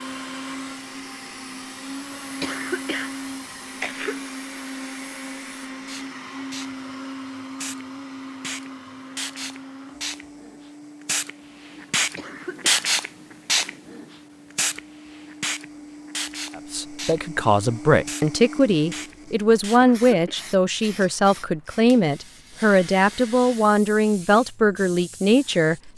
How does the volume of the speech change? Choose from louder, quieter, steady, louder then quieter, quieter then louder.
steady.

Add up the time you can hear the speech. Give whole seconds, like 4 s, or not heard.
9 s.